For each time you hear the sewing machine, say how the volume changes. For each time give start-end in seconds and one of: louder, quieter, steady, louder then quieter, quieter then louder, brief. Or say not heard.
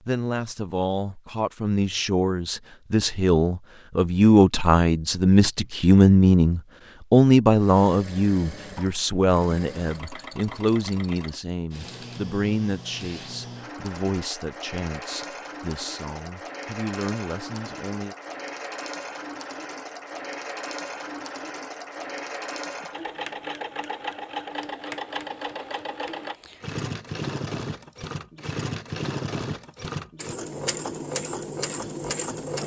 7.5-32.6 louder.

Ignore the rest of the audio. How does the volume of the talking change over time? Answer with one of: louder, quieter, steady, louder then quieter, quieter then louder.
louder then quieter.